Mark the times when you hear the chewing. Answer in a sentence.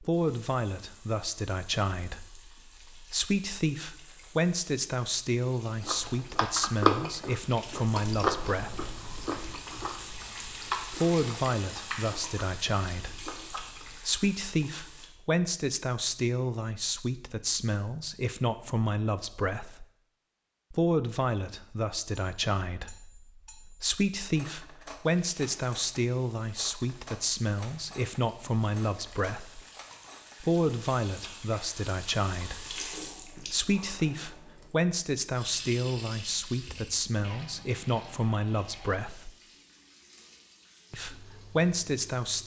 You can hear the chewing from 5.8 to 13.9 s.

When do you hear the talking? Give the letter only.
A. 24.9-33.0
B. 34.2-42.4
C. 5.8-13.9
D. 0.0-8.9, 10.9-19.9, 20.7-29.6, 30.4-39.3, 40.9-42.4
D.